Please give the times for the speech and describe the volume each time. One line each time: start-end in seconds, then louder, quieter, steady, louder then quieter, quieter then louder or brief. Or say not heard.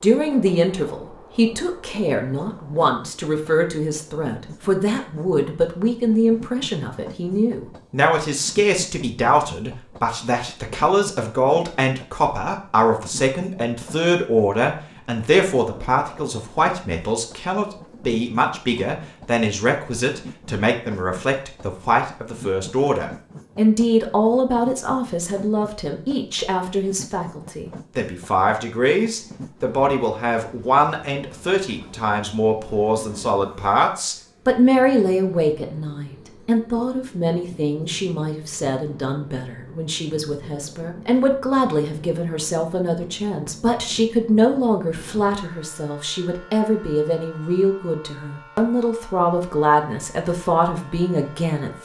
0.0-51.7 steady.